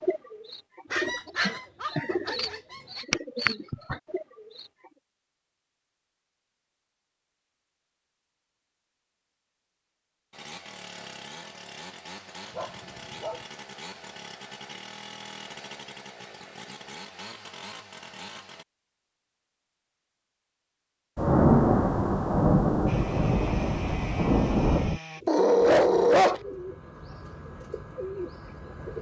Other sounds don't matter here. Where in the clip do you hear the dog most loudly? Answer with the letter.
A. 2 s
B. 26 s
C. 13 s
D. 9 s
B.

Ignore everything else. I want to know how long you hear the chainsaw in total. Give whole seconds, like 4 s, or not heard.
11 s.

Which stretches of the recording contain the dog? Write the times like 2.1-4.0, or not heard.
0.9-3.0, 12.5-13.4, 25.2-26.4.